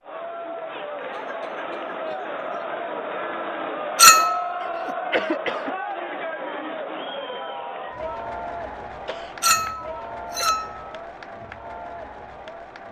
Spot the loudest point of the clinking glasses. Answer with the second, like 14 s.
4 s.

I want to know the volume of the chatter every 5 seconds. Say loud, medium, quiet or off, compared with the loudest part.
loud, loud, medium.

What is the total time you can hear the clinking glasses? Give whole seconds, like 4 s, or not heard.
2 s.